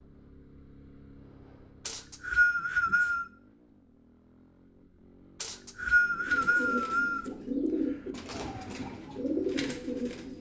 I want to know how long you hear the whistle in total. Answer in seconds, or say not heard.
3 s.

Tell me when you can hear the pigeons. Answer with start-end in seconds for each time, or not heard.
6.2-10.3.